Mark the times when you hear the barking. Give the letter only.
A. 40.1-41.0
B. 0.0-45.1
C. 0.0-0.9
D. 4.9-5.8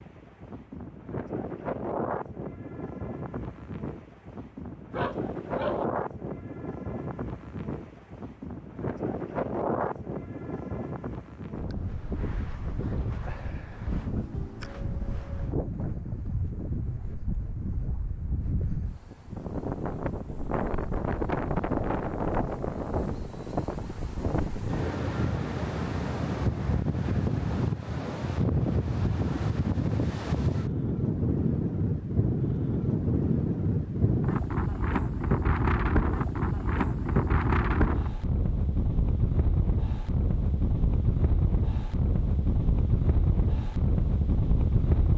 D.